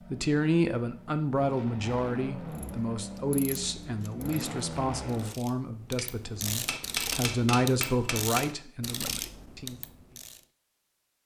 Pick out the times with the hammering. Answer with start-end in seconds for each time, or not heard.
6.0-8.5.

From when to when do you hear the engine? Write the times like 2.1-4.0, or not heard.
0.0-5.3.